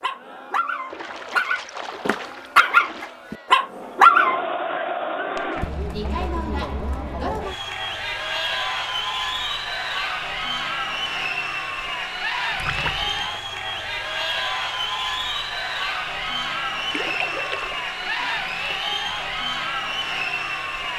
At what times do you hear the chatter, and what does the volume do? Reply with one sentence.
The chatter can be heard from 0.0 to 20.9 s, getting louder.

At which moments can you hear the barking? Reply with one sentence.
The barking can be heard from 0.0 to 4.4 s.